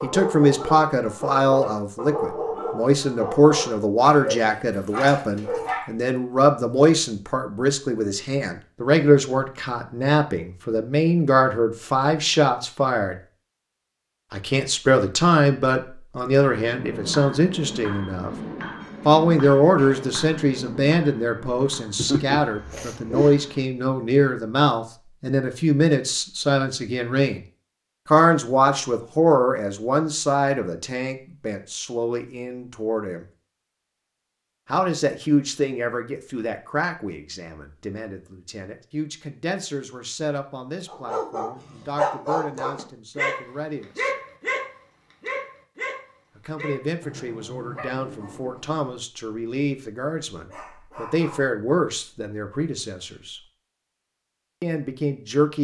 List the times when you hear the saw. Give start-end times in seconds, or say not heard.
not heard.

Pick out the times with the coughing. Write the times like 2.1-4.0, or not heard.
21.9-23.4.